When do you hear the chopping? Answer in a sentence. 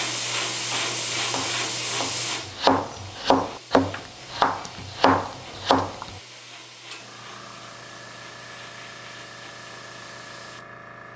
The chopping can be heard from 0.7 to 6.2 s.